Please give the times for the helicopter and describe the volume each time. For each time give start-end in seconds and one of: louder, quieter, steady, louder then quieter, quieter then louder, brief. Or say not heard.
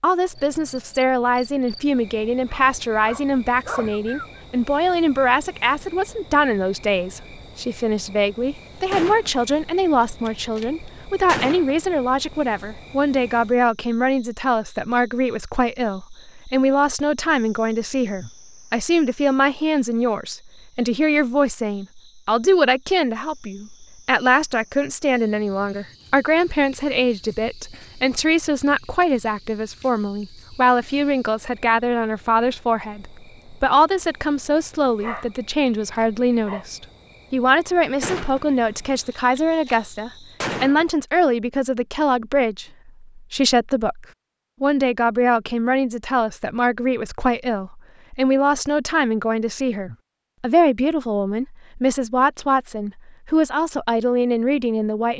not heard.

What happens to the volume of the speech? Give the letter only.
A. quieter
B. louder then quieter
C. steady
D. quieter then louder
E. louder
C.